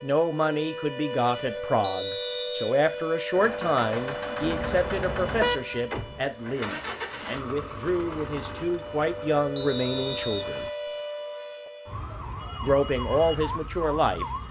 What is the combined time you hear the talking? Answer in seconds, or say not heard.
12 s.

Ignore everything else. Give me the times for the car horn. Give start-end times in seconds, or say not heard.
4.4-6.2.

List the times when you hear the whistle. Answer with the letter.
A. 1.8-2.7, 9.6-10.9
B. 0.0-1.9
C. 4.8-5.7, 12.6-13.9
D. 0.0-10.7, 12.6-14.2
A.